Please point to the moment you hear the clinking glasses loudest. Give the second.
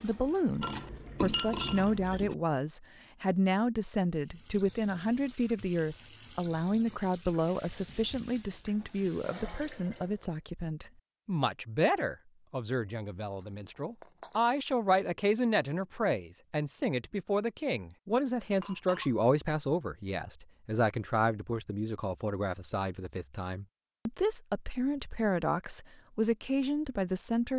1 s.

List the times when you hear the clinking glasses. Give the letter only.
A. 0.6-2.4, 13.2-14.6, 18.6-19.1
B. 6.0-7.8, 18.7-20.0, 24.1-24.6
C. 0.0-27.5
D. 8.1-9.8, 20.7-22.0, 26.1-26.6
A.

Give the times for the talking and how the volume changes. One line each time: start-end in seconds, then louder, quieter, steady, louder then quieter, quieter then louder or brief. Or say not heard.
0.0-27.5 steady.